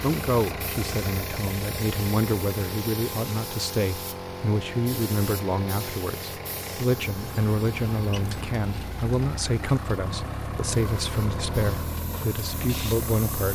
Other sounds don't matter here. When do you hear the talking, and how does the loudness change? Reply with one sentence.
You can hear the talking from 0.0 to 13.5 s, at a steady volume.